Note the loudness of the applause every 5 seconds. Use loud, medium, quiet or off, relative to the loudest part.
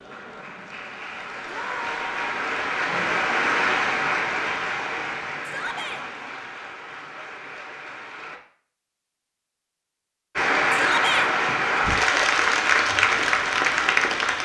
medium, quiet, loud.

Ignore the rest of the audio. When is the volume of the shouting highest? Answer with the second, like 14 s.
11 s.